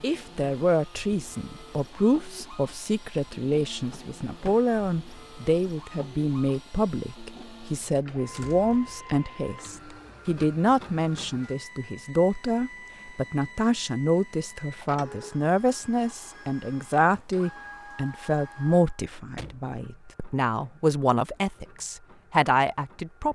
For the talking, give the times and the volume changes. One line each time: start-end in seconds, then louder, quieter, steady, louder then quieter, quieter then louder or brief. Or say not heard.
0.0-23.3 steady.